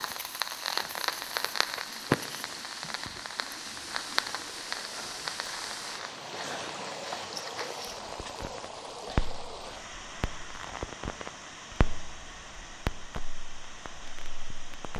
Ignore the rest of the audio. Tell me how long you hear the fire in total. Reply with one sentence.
The fire can be heard for 15 seconds in total.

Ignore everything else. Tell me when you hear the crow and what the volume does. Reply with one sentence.
The crow can't be heard in this clip.